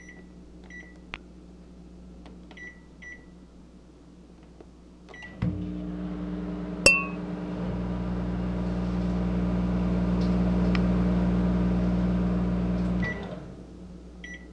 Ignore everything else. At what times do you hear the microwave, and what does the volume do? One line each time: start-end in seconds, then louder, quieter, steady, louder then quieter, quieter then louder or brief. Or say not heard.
0.0-14.4 louder.